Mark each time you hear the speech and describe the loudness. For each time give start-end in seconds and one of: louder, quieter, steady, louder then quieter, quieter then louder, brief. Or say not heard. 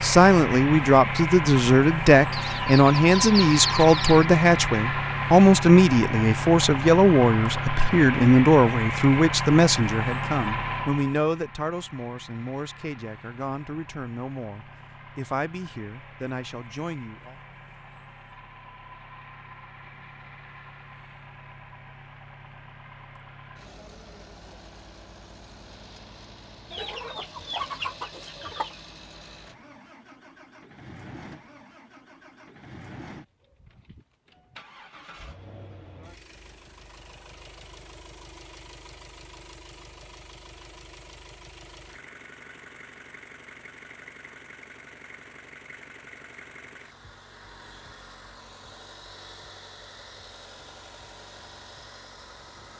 0.0-17.4 quieter.